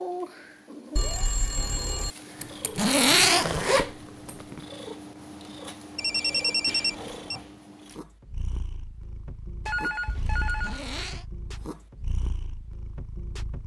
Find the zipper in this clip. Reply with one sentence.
You can hear the zipper from 2.4 to 4.7 s and from 10.4 to 11.2 s.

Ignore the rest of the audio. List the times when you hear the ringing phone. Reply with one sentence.
The ringing phone can be heard from 0.9 to 2.1 s, from 6.0 to 7.4 s and from 9.7 to 10.9 s.